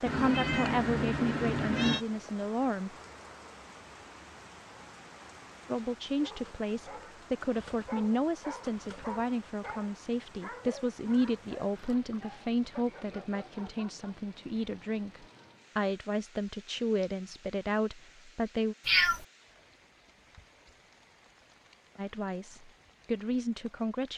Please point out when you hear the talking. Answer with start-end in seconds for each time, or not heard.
0.0-2.9, 5.7-18.8, 21.9-24.1.